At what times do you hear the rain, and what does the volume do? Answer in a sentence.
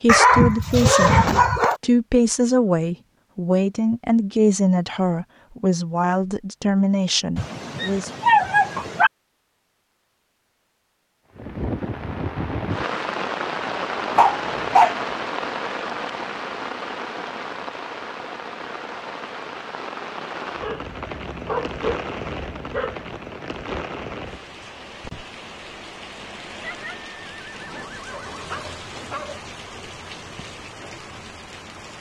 You can hear the rain from 11.3 to 31.9 s, getting quieter.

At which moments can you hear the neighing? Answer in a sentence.
You can hear the neighing from 26.6 to 28.6 s.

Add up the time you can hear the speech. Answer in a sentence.
You can hear the speech for 8 seconds altogether.